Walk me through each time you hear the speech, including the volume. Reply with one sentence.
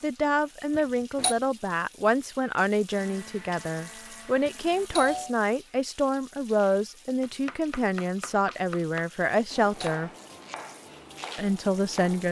You can hear the speech from 0.0 to 10.1 s, at a steady volume; and briefly from 11.3 to 12.2 s.